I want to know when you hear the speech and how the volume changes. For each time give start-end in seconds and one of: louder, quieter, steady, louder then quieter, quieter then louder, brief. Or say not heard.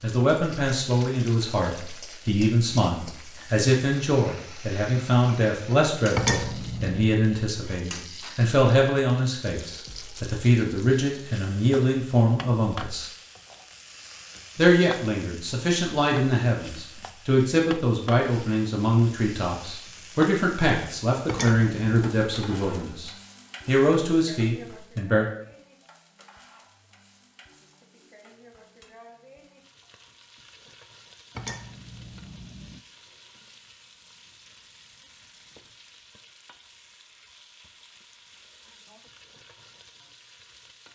0.0-13.1 steady
14.6-25.2 steady.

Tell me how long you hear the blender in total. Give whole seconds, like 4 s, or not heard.
not heard.